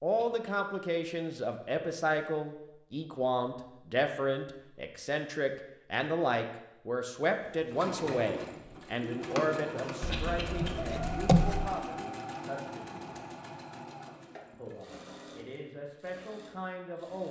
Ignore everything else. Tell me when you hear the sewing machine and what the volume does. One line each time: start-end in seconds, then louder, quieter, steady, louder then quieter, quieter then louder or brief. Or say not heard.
7.4-17.2 quieter.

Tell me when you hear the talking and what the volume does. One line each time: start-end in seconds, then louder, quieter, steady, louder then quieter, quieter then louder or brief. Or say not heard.
0.0-13.2 quieter
14.5-17.2 brief.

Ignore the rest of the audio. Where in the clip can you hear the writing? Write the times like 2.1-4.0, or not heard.
10.1-11.7.